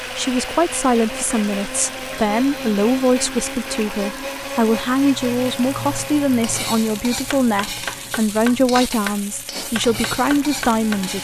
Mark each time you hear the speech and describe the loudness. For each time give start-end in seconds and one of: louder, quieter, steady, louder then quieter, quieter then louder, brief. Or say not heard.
0.1-11.2 steady.